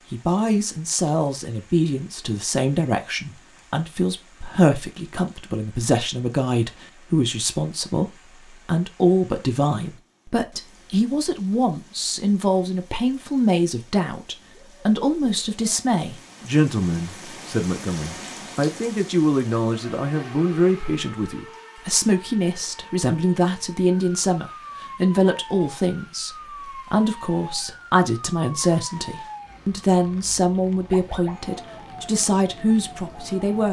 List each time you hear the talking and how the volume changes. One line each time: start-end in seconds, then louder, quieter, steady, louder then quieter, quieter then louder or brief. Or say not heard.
0.1-33.6 steady.